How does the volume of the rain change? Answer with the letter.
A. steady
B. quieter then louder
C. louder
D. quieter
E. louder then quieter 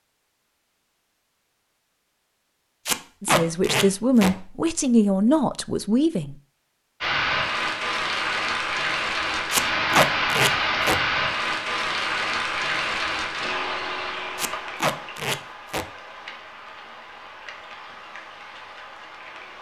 D.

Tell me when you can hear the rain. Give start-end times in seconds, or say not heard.
7.0-19.5.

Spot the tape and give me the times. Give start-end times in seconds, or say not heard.
2.9-4.3, 9.5-11.0, 14.3-15.8.